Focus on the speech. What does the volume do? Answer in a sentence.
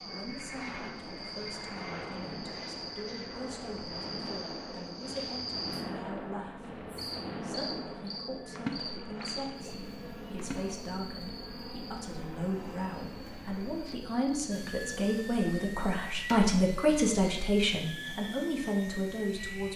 The loudness of the speech goes up.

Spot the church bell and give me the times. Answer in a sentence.
The church bell can't be heard in this clip.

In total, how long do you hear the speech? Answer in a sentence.
You can hear the speech for 20 seconds altogether.